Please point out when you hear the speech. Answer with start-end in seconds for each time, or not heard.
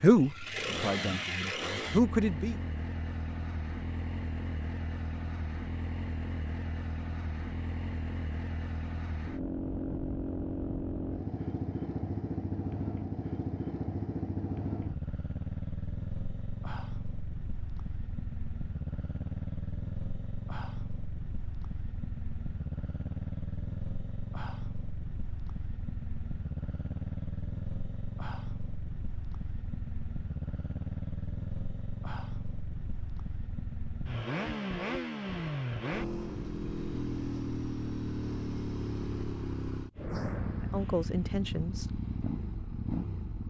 0.0-2.5, 40.7-42.0.